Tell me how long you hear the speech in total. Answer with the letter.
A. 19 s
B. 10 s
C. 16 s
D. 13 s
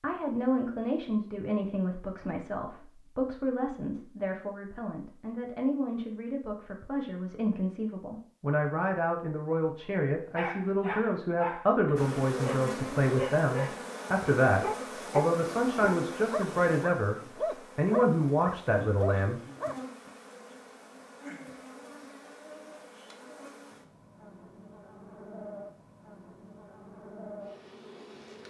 A.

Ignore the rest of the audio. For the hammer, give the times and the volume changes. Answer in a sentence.
The hammer can't be heard in this clip.